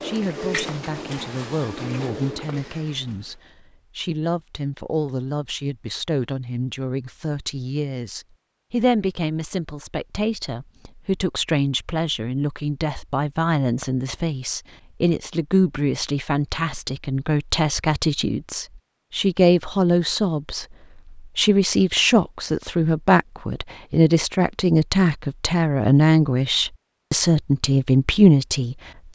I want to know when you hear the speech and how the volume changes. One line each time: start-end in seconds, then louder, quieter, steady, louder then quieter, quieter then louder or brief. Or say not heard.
0.0-29.0 louder.